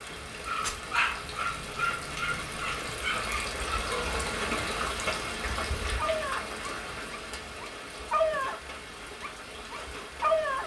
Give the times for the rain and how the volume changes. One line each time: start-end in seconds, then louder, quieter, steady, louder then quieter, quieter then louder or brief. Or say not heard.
0.0-10.6 louder then quieter.